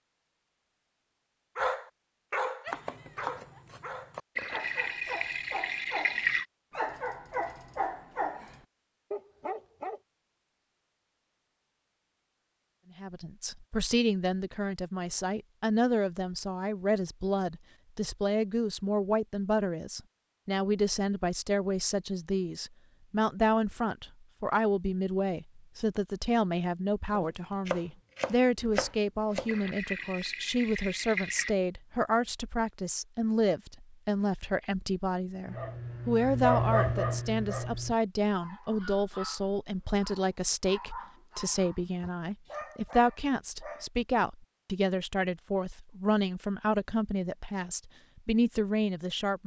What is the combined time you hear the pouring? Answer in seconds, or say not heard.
4 s.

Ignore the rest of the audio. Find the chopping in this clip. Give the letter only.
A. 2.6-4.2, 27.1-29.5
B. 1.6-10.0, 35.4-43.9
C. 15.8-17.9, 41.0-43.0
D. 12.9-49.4
A.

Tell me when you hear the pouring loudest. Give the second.
6 s.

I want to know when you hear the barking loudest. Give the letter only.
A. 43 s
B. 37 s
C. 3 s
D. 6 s
B.